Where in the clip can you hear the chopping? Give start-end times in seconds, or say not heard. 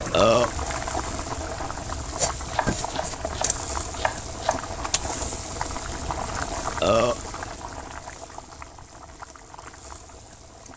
2.5-4.7.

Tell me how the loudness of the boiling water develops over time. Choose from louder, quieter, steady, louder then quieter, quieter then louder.
quieter.